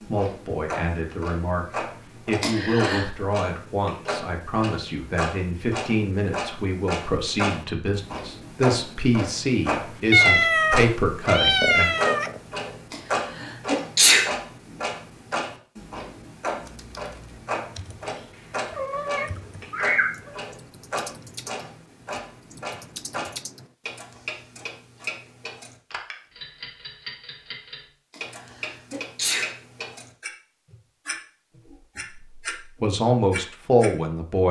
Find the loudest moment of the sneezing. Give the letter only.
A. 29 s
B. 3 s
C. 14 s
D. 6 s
C.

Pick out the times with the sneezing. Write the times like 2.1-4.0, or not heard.
2.4-3.0, 12.9-14.3, 28.1-29.6.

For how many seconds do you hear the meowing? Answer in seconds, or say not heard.
4 s.